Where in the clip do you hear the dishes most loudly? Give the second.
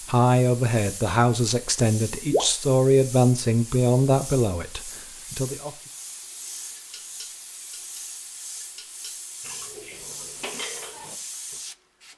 11 s.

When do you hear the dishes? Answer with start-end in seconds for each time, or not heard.
6.8-11.6.